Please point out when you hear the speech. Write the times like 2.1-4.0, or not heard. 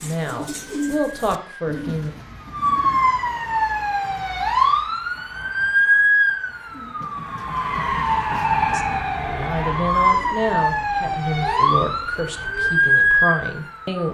0.0-2.1, 8.7-14.0.